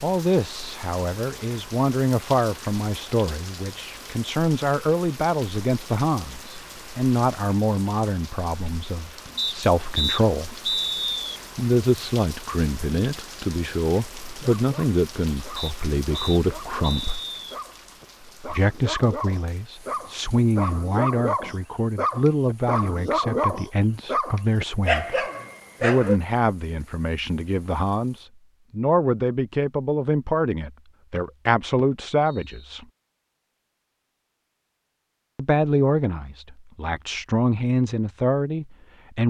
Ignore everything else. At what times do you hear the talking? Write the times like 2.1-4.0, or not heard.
0.0-10.6, 11.6-17.2, 18.5-32.9, 35.4-39.2.